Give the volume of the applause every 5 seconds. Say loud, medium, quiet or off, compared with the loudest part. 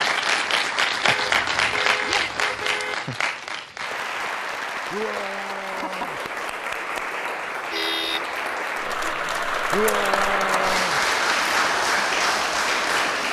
loud, medium, loud.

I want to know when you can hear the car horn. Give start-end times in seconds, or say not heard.
1.1-3.0, 7.7-8.2.